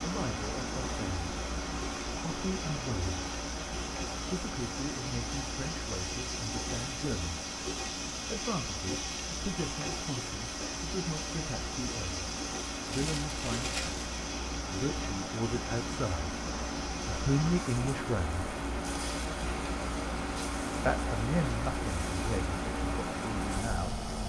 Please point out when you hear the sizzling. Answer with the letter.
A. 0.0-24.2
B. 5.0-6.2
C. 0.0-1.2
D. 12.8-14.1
A.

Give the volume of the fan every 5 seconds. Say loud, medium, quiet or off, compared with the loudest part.
loud, medium, medium, loud, loud.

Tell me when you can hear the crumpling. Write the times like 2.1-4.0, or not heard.
12.8-14.1.